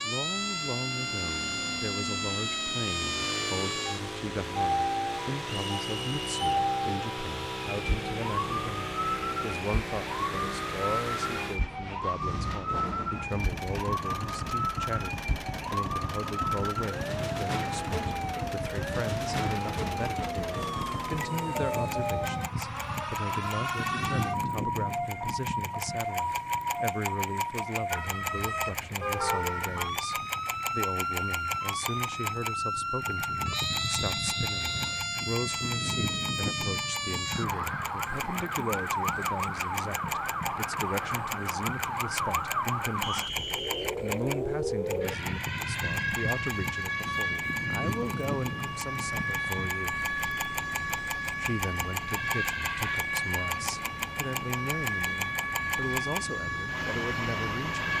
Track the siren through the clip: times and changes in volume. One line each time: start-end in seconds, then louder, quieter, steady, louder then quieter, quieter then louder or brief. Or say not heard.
0.0-57.9 steady.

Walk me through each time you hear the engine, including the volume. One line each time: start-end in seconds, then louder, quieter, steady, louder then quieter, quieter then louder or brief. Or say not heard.
0.0-57.9 steady.